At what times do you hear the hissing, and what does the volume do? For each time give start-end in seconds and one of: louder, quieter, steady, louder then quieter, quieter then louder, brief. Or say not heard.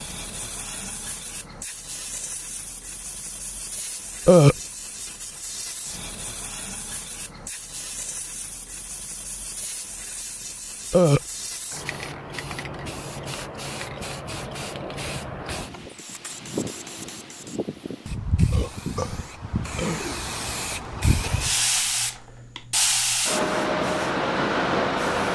0.0-25.3 louder.